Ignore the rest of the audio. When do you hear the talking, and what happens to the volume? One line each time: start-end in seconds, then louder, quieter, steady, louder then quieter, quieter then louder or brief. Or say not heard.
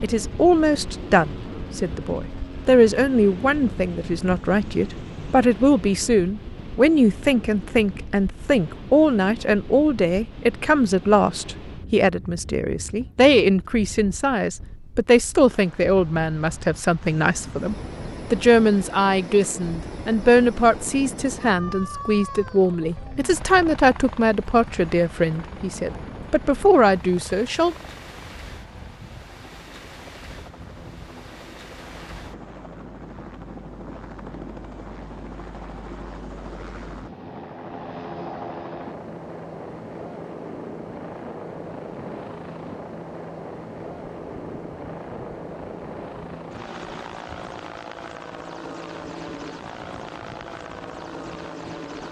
0.0-27.8 steady.